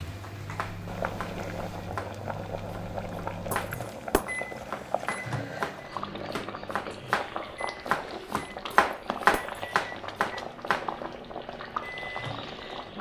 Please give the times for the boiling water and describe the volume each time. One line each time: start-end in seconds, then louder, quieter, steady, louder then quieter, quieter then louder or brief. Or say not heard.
0.0-12.9 steady.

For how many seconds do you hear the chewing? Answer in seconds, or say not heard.
not heard.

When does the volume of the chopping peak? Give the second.
9 s.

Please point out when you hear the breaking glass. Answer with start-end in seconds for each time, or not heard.
3.5-4.2, 8.7-9.6.